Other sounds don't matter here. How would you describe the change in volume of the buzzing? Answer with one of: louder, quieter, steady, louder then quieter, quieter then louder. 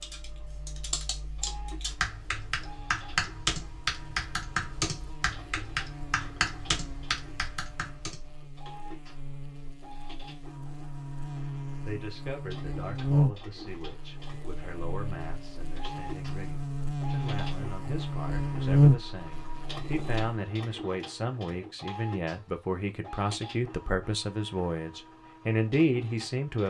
louder.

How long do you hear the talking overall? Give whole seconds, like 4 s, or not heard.
15 s.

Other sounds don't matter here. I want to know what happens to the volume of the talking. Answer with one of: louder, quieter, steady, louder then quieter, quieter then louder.
louder.